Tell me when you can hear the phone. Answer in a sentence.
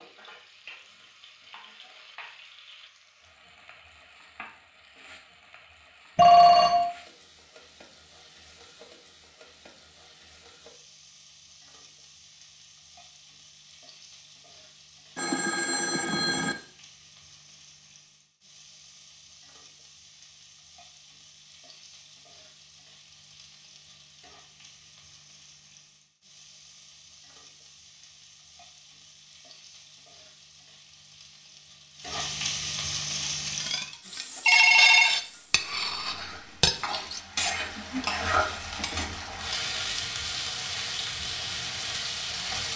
The phone can be heard from 6.2 to 6.9 s, from 15.2 to 16.6 s and from 34.5 to 35.1 s.